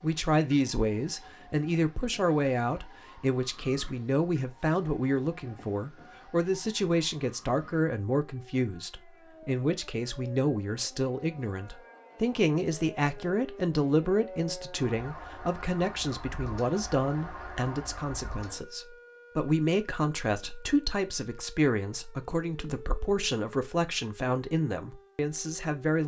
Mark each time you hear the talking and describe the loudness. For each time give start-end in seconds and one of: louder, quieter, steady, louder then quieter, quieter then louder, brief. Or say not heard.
0.0-26.0 steady.